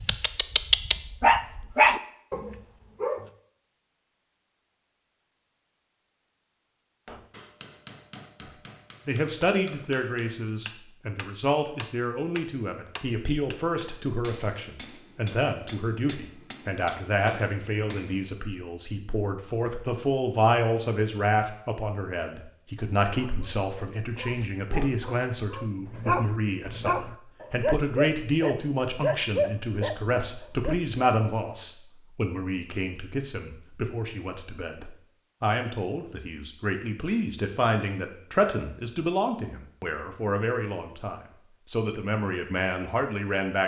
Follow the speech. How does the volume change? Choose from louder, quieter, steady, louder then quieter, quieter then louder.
steady.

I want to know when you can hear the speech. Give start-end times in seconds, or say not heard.
8.4-43.6.